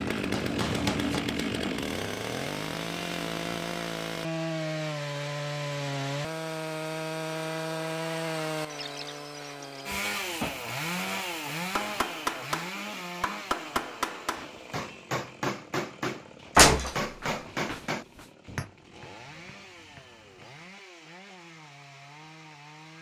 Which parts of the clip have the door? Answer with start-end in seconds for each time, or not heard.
16.6-17.8.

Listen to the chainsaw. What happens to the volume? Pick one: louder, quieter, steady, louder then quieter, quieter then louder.
quieter.